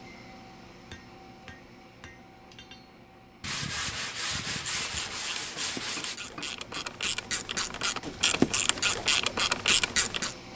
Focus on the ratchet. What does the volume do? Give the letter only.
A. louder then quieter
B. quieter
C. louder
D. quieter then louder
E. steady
C.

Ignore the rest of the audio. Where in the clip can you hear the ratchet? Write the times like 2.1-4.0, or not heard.
4.8-10.3.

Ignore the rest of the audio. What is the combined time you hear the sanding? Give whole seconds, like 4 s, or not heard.
3 s.